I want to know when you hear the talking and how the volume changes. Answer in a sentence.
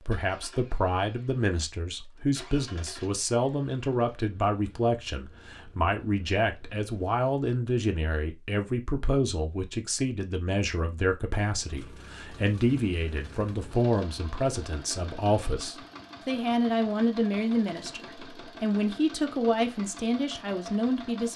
You can hear the talking from 0.1 to 21.3 s, at a steady volume.